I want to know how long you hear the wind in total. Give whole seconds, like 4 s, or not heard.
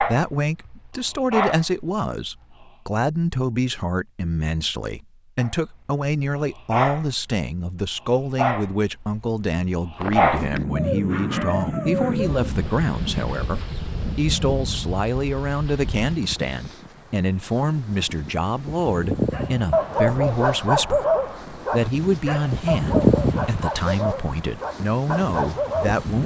16 s.